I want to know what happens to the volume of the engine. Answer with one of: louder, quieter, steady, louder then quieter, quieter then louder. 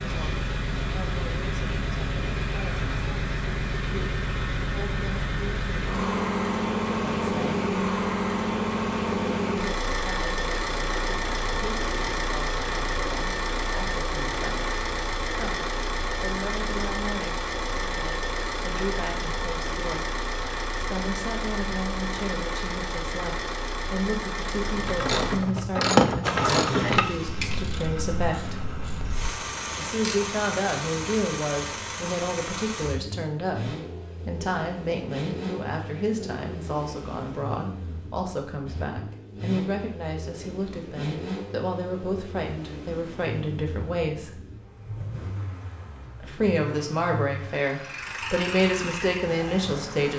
quieter.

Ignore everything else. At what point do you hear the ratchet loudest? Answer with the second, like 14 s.
26 s.